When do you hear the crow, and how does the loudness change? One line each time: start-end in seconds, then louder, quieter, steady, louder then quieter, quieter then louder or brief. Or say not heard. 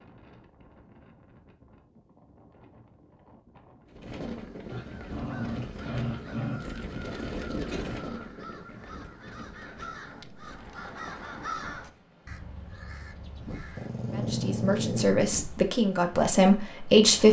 5.1-14.1 louder then quieter.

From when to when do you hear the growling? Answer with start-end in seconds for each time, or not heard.
4.7-6.6, 13.8-15.2.